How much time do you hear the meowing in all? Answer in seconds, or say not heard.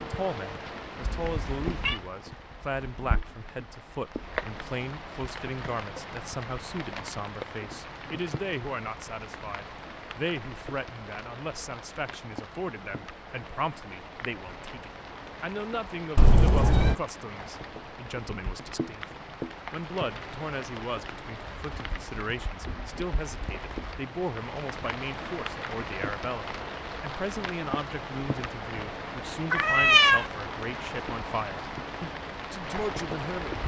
2 s.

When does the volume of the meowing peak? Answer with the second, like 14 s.
30 s.